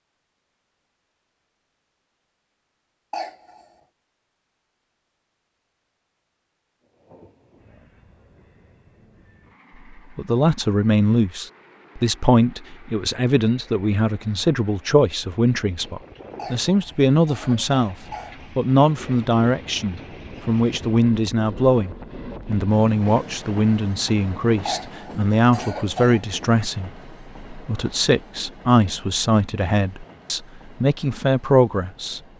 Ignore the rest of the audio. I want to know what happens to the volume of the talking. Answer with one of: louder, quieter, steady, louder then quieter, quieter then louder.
steady.